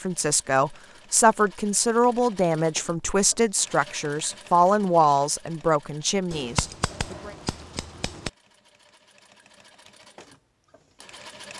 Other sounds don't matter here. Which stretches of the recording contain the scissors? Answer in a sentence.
The scissors can be heard from 6.3 to 8.3 s.